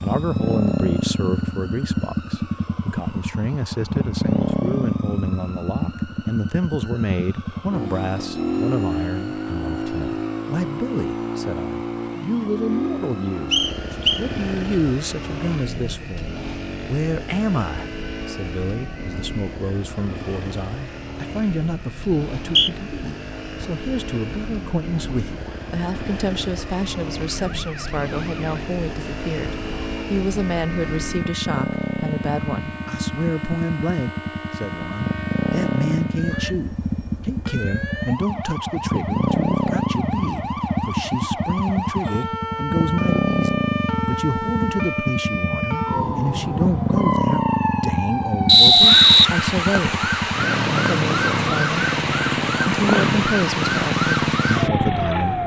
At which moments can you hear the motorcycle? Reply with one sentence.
The motorcycle can be heard from 0.0 to 55.4 s.